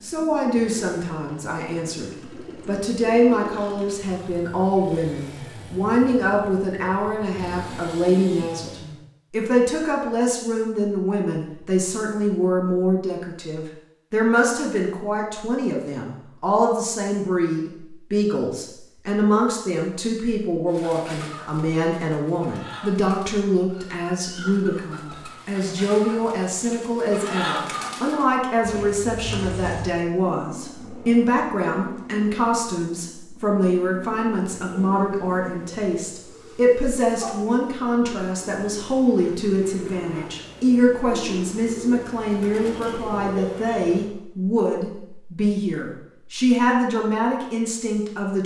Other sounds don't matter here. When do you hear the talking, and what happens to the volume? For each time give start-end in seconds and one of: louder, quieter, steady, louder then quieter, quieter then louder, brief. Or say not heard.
0.0-48.4 steady.